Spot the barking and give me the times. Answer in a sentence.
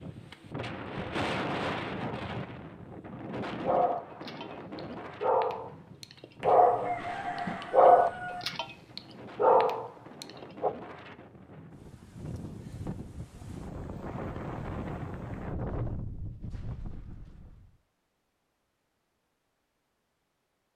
The barking can be heard from 3.5 to 10.7 s.